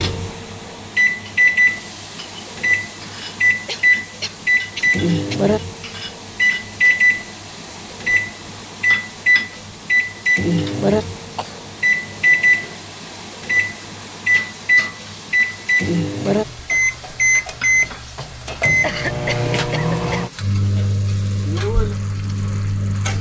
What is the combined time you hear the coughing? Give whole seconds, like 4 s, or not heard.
5 s.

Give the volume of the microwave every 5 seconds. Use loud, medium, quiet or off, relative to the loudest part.
loud, loud, loud, loud, medium.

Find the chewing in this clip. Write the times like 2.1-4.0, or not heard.
not heard.